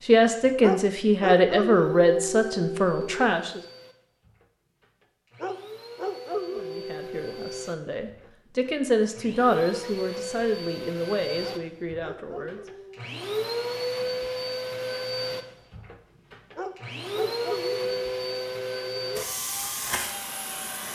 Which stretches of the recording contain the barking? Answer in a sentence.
The barking can be heard from 0.6 to 3.3 s, from 5.4 to 7.8 s, from 11.4 to 13.0 s and from 16.6 to 19.3 s.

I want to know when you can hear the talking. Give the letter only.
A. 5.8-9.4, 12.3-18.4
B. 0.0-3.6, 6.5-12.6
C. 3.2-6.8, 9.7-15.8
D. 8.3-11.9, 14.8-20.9
B.